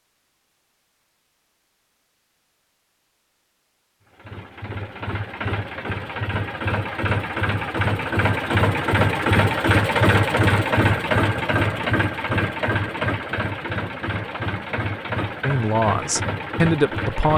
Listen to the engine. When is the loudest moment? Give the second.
10 s.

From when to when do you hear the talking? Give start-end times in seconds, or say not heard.
15.4-17.3.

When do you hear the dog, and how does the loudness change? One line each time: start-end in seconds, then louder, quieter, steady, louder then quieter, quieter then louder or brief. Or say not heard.
not heard.